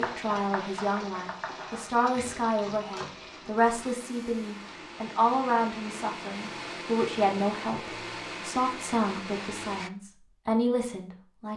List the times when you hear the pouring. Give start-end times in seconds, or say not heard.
not heard.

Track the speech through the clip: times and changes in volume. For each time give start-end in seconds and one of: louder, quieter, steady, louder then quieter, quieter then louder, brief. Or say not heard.
0.0-11.5 steady.